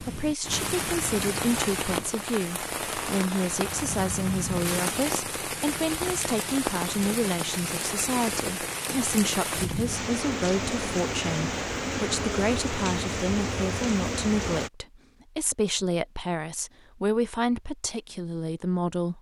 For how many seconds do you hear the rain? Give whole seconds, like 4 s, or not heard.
15 s.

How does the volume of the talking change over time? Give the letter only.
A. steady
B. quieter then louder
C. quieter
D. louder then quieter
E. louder
A.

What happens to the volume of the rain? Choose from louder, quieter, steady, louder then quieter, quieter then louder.
steady.